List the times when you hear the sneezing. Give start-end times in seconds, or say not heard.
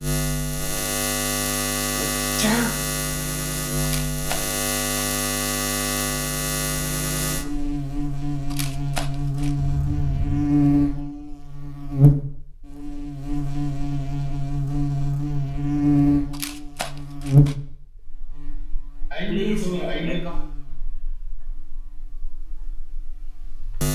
1.9-2.8, 9.6-10.4, 19.1-20.4.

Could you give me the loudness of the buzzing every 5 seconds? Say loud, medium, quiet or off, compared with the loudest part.
loud, loud, loud, loud, quiet.